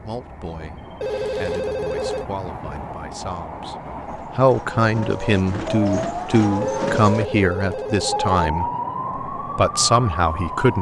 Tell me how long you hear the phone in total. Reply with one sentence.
You can hear the phone for 3 seconds altogether.